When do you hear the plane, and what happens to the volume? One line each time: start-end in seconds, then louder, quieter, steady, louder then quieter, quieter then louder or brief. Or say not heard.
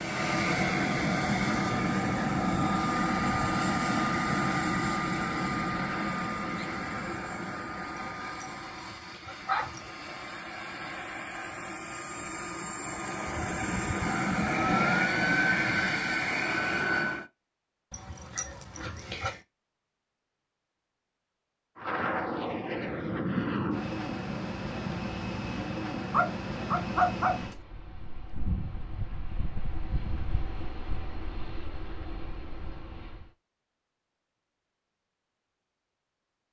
0.0-17.3 quieter then louder
21.8-33.3 quieter.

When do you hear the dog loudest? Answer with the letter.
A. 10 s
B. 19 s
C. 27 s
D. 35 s
C.